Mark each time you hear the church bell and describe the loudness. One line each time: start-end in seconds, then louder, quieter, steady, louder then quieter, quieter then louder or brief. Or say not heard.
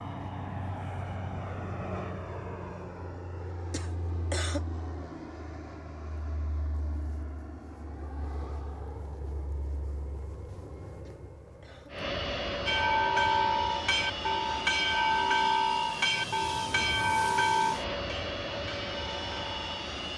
12.7-19.9 quieter.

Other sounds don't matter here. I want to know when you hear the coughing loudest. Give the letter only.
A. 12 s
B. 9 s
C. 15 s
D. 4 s
D.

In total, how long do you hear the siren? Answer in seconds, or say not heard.
not heard.